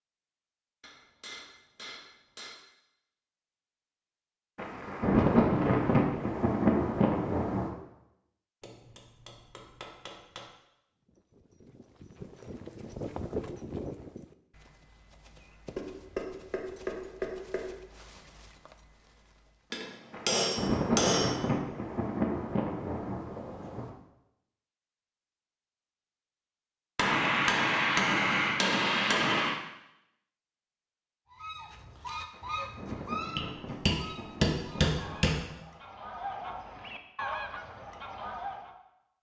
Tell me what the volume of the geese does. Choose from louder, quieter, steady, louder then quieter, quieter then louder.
quieter then louder.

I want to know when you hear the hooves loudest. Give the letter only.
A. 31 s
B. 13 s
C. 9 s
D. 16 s
B.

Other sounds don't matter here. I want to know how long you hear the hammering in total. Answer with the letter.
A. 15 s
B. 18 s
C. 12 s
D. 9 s
C.